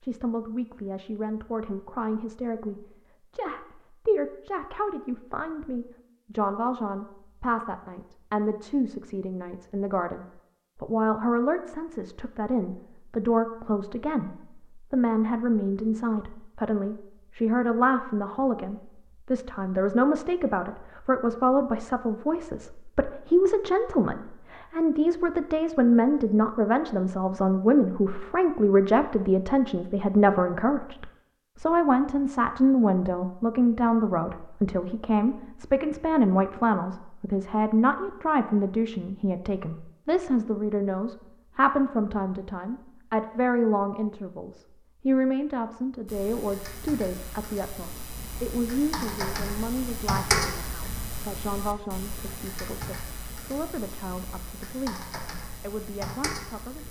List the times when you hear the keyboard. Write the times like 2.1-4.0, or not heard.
46.0-56.8.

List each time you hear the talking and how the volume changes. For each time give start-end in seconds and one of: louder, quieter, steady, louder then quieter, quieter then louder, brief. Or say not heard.
0.0-56.8 louder then quieter.